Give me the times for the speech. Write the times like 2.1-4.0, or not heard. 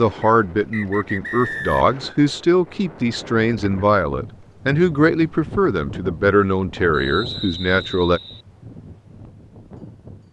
0.0-8.2.